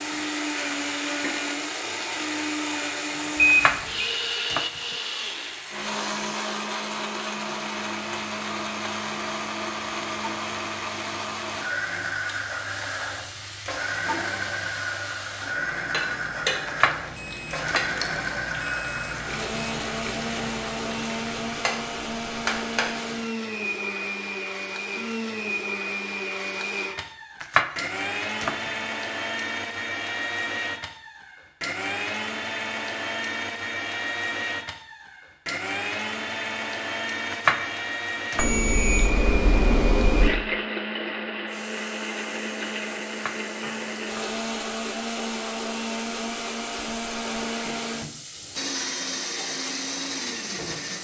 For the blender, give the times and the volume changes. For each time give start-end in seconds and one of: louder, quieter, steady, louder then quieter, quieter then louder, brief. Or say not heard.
0.0-50.9 steady.